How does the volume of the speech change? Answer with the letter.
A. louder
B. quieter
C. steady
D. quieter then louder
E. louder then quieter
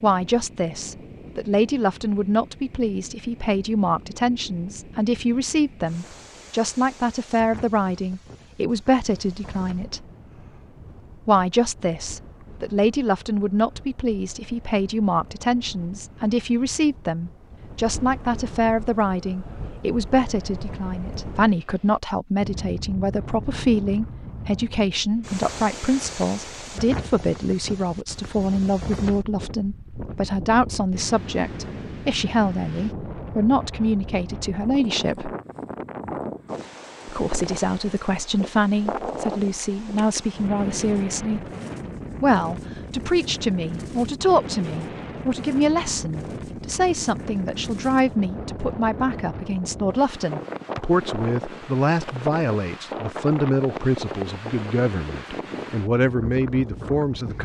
C.